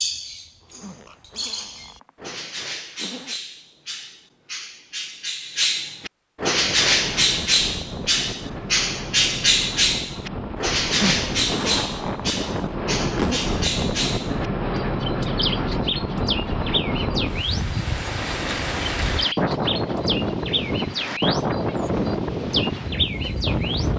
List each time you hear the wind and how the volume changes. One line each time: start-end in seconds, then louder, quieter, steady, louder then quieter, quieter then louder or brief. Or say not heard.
6.5-23.9 louder.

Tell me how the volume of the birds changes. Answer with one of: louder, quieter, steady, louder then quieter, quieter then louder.
louder then quieter.